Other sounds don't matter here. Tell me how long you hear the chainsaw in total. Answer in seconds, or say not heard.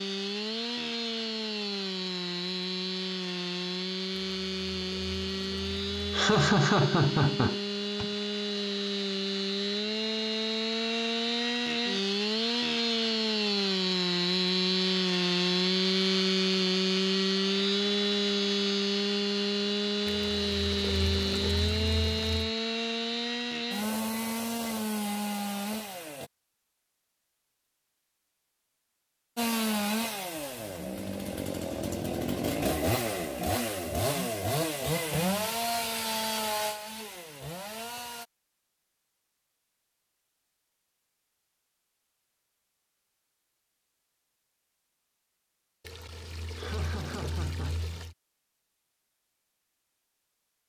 35 s.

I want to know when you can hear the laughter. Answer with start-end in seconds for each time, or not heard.
6.1-8.1, 46.5-47.8.